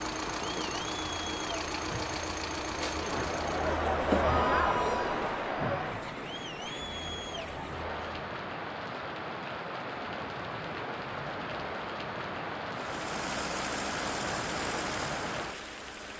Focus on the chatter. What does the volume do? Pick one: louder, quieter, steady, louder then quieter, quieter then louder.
louder then quieter.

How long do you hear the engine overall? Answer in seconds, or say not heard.
7 s.